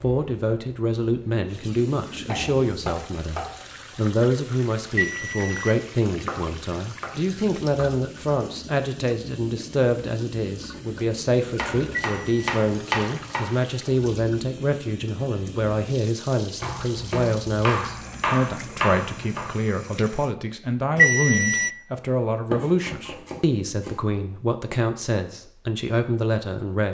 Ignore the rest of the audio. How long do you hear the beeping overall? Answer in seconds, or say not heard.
2 s.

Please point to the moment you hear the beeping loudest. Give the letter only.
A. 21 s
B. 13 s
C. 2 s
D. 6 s
A.